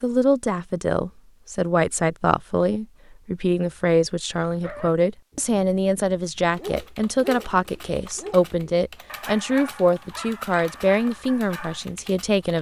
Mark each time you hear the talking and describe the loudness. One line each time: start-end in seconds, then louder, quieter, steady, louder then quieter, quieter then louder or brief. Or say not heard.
0.0-12.5 steady.